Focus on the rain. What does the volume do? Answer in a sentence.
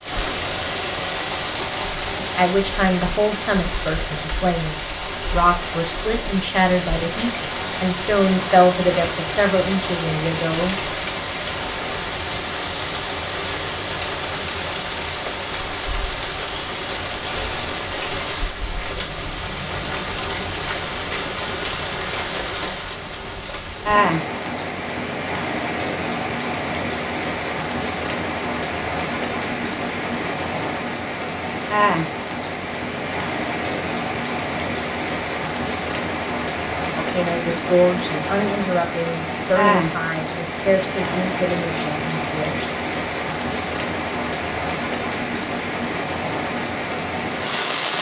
The volume of the rain stays about the same.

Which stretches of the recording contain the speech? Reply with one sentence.
You can hear the speech from 2.1 to 10.8 s and from 37.0 to 42.6 s.